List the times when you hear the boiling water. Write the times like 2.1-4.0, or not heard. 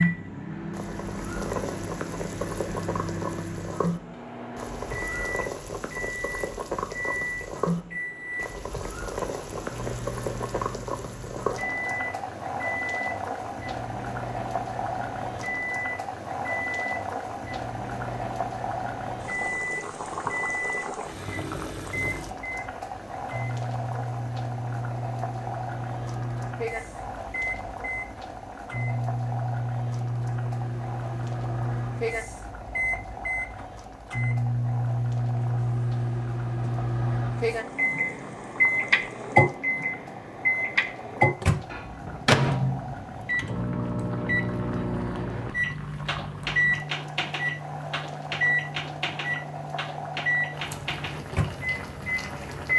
0.0-52.7.